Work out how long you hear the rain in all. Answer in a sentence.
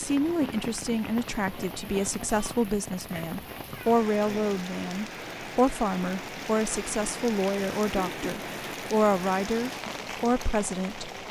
The rain can be heard for 11 seconds in total.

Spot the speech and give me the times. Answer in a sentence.
The speech can be heard from 0.0 to 11.1 s.